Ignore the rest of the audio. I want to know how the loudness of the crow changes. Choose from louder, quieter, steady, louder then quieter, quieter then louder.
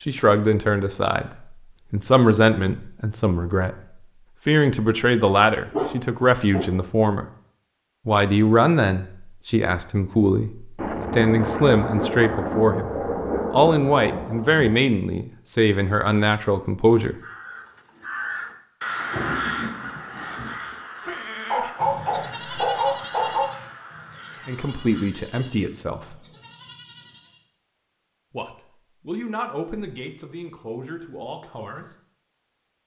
quieter.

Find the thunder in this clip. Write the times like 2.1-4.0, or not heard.
10.8-14.8, 18.9-20.6.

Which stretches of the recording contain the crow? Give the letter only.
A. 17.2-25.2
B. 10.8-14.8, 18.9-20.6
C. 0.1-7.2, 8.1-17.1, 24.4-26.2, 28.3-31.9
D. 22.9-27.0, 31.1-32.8
A.